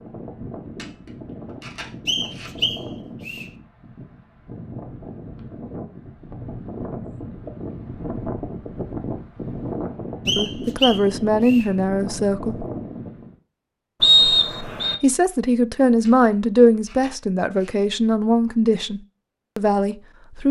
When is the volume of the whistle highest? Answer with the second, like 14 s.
14 s.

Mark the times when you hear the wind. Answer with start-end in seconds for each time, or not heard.
0.0-13.3.